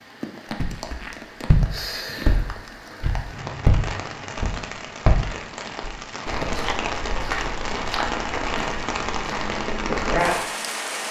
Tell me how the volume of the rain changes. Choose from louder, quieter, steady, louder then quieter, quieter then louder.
louder.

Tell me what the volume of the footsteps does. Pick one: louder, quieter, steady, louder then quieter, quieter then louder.
quieter.